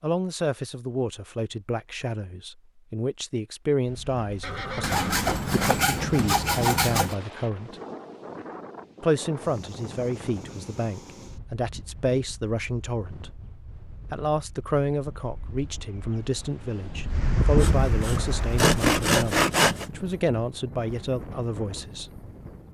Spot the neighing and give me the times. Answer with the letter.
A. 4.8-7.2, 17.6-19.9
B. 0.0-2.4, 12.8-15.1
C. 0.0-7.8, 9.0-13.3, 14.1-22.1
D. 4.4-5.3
D.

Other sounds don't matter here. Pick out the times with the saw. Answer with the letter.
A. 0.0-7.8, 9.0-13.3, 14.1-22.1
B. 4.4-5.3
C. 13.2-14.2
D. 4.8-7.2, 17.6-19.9
D.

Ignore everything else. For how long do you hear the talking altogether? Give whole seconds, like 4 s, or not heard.
20 s.